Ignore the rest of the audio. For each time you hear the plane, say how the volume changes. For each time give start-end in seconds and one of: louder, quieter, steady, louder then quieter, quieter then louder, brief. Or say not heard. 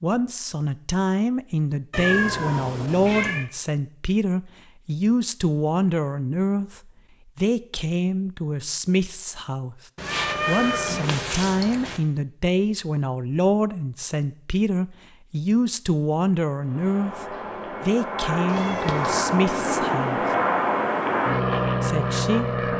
16.6-22.7 louder.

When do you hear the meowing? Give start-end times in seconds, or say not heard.
1.9-3.5, 9.9-12.0, 18.5-19.2.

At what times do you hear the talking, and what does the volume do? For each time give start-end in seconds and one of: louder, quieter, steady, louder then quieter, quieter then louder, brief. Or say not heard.
0.0-9.8 steady
10.4-20.2 steady
21.8-22.4 brief.